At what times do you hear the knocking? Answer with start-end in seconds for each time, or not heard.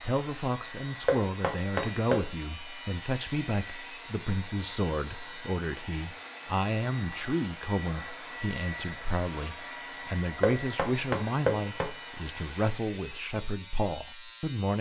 1.1-2.2, 10.4-11.8.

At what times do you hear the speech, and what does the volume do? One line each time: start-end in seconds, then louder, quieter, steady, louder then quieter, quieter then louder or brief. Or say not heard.
0.0-14.7 steady.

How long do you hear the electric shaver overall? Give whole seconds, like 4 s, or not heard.
15 s.